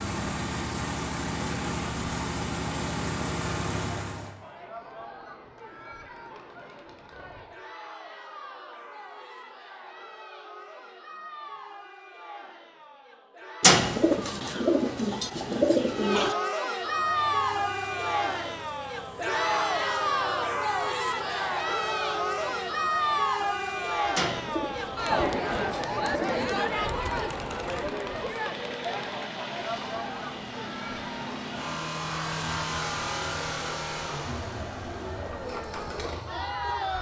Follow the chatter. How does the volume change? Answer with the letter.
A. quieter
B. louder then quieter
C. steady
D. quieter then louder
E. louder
B.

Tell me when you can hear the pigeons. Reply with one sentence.
The pigeons can be heard from 13.6 to 16.4 s and from 24.1 to 26.6 s.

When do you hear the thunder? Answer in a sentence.
You can't hear the thunder here.